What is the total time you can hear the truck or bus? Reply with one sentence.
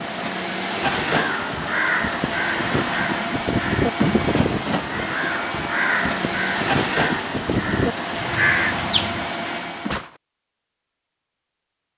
The truck or bus can be heard for 10 seconds in total.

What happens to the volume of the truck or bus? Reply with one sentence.
The loudness of the truck or bus stays about the same.